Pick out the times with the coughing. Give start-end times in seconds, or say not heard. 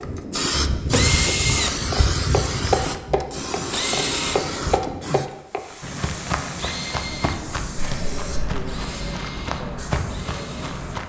7.8-8.6.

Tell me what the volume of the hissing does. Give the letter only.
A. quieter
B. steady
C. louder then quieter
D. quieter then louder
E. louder
A.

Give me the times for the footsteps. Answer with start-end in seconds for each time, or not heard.
0.9-11.0.